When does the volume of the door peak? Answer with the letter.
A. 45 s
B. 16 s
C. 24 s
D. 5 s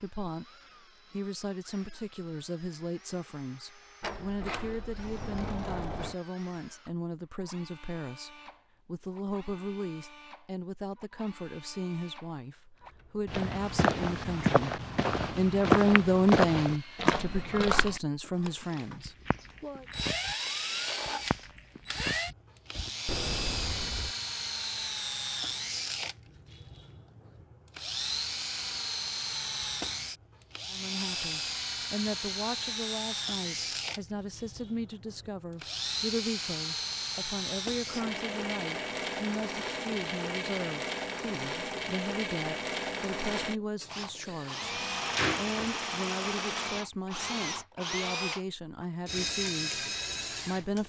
A.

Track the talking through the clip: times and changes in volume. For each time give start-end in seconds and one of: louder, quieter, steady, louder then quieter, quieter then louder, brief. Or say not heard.
0.0-19.9 louder
30.7-50.8 steady.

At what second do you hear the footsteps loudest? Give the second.
16 s.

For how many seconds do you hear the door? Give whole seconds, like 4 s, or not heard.
5 s.